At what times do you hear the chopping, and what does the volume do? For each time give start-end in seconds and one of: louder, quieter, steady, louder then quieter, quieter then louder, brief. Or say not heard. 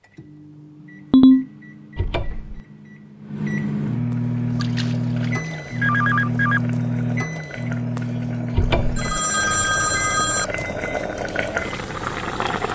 not heard.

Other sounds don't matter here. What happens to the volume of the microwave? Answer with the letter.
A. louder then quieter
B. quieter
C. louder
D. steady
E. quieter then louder
A.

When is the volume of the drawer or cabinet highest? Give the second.
9 s.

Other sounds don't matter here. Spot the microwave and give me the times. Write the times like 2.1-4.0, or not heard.
0.0-12.4.